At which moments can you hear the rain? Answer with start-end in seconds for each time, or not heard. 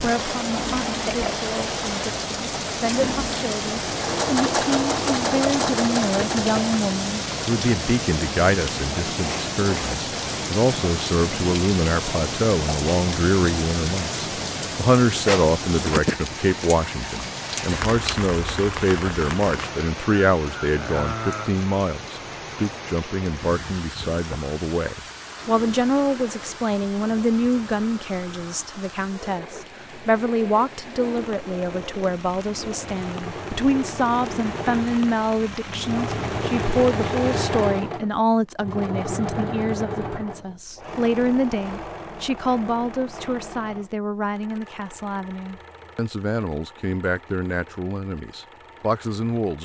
0.0-37.8.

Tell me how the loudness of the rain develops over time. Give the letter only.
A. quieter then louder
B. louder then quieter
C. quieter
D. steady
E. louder
C.